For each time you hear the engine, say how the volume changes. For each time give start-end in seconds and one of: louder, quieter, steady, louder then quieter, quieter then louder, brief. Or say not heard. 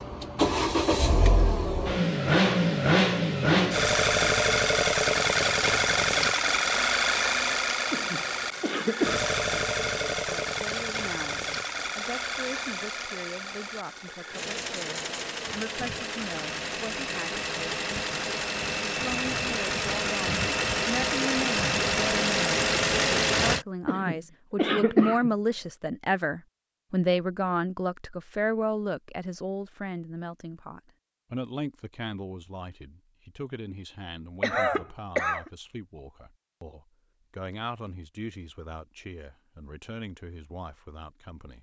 0.0-23.6 quieter then louder.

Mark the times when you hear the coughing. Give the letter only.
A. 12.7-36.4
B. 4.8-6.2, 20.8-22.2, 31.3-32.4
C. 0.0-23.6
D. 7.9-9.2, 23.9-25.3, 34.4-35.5
D.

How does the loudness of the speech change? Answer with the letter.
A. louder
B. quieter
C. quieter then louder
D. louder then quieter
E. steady
D.